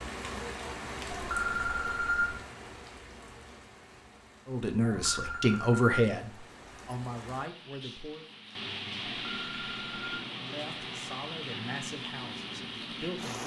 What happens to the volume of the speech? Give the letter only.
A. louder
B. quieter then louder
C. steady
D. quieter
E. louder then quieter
D.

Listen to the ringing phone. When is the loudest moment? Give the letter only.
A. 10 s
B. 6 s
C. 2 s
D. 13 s
C.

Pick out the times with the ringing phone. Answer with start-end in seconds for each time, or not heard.
1.1-2.4, 4.8-6.0, 9.2-10.2.